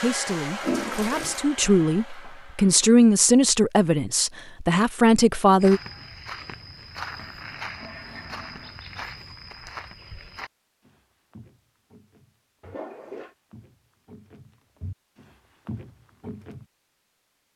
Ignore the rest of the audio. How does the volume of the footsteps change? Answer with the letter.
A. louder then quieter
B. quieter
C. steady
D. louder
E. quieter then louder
E.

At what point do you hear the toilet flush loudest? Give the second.
1 s.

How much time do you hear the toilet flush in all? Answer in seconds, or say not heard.
3 s.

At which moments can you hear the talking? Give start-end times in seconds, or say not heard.
0.0-5.8.